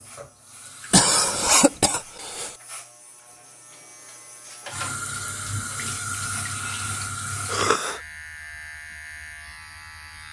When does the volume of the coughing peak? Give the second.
1 s.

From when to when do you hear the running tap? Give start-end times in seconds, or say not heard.
0.0-1.6, 4.7-7.8.